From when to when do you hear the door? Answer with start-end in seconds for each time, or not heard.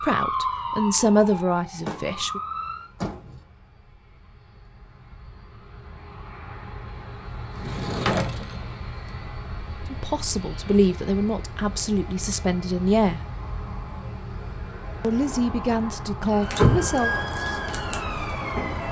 1.8-3.5, 7.5-8.6, 16.6-17.2.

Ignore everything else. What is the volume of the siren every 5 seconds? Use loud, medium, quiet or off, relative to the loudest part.
loud, off, off, loud.